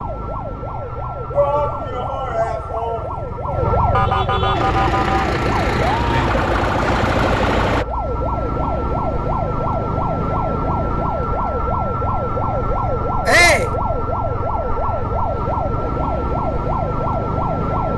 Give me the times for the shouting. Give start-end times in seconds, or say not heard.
1.3-3.7, 13.2-13.7.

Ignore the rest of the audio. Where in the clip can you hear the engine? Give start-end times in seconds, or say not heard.
4.5-7.8.